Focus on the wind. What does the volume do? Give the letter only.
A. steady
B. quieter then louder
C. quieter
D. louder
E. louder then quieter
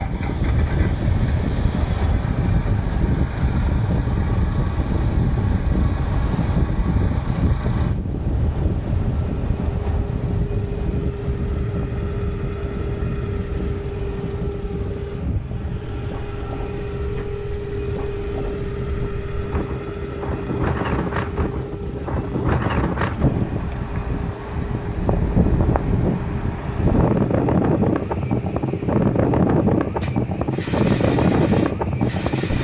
B.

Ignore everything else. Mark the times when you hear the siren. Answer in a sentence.
The siren can't be heard in this clip.